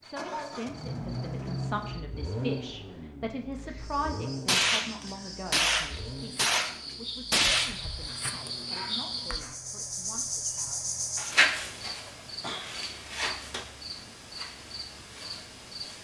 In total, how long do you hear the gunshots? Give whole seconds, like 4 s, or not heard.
3 s.